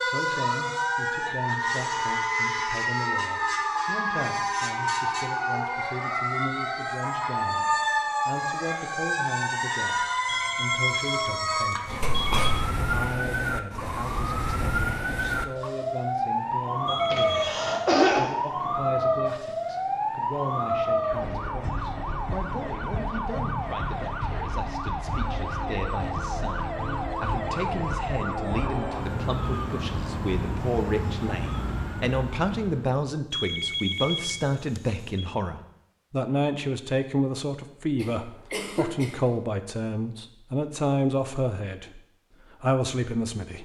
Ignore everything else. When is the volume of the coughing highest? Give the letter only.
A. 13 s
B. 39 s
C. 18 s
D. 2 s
C.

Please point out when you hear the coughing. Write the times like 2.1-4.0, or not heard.
12.0-12.6, 17.1-18.3, 38.0-39.1.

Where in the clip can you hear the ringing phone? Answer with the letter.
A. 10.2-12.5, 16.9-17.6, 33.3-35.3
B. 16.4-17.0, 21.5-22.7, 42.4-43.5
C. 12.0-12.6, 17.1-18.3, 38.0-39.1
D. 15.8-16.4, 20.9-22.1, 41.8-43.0
A.